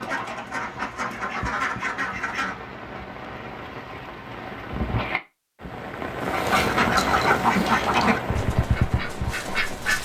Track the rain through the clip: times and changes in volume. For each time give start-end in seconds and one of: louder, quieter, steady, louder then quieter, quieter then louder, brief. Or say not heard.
0.0-10.0 louder.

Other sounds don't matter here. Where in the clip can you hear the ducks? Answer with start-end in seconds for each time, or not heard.
0.0-2.5, 6.2-10.0.